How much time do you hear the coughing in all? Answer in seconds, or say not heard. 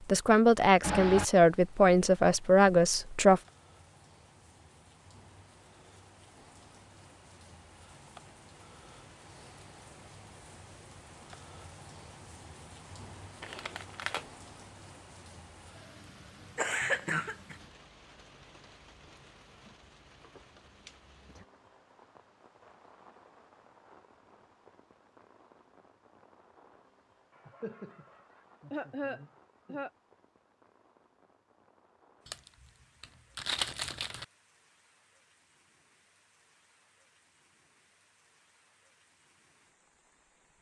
4 s.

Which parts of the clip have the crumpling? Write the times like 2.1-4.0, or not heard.
13.4-14.3, 32.2-34.2.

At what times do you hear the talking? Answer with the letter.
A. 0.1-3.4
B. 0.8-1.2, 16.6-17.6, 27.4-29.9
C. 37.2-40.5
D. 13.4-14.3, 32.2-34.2
A.